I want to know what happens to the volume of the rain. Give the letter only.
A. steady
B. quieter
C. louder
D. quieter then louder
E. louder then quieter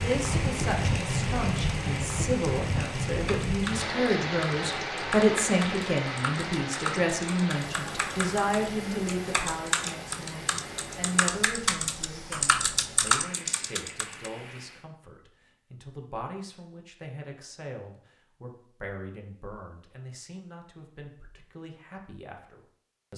B.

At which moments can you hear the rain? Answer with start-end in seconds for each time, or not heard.
0.0-14.9.